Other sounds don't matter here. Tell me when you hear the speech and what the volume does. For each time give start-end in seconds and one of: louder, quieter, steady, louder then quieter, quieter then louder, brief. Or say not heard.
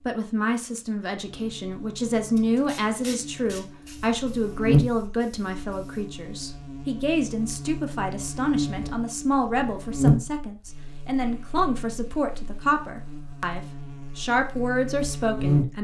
0.0-15.7 steady.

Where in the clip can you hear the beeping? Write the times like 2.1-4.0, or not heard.
not heard.